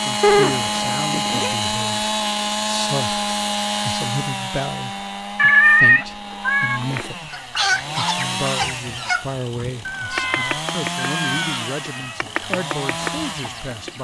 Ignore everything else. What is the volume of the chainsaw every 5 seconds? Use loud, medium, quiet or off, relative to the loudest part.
loud, medium, medium.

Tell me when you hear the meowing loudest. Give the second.
6 s.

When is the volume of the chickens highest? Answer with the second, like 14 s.
8 s.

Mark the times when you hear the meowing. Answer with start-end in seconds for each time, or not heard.
0.2-1.6, 5.3-7.0, 9.8-12.2.